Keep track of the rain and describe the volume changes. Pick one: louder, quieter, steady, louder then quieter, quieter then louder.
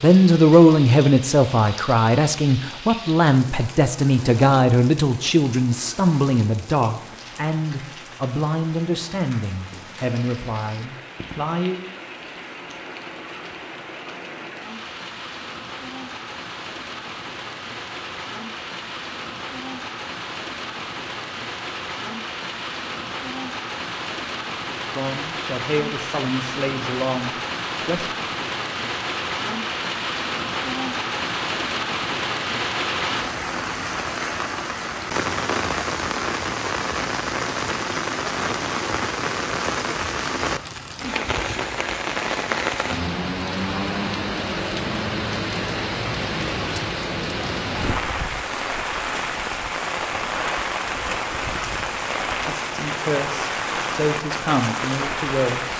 louder.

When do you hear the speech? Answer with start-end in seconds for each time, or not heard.
0.0-11.8, 24.9-28.1, 52.5-55.7.